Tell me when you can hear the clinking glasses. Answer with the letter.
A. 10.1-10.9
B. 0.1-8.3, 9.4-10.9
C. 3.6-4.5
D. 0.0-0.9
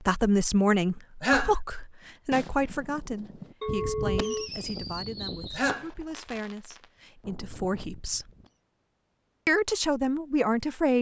C.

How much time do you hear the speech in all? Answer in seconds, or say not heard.
10 s.